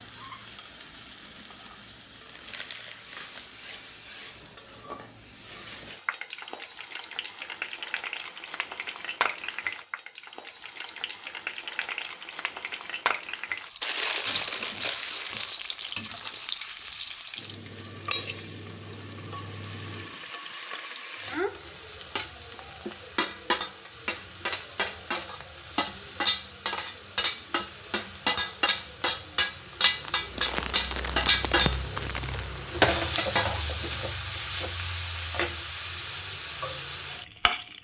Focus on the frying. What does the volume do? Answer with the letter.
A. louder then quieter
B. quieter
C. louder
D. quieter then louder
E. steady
C.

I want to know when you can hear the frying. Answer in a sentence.
The frying can be heard from 0.0 to 37.7 s.